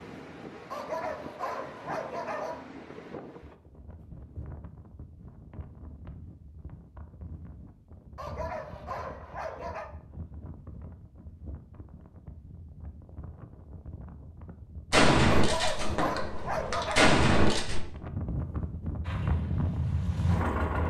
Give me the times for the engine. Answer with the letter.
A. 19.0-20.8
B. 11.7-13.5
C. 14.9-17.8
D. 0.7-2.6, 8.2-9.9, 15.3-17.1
A.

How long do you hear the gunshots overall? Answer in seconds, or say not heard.
3 s.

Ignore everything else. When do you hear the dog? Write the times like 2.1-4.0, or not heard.
0.7-2.6, 8.2-9.9, 15.3-17.1.